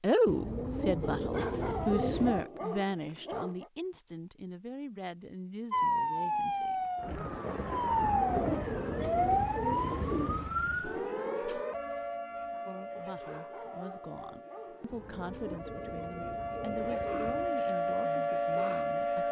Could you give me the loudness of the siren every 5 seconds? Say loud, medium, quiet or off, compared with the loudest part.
off, loud, medium, loud.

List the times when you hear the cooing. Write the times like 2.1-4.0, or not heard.
0.2-2.5, 7.9-10.5, 14.9-17.6.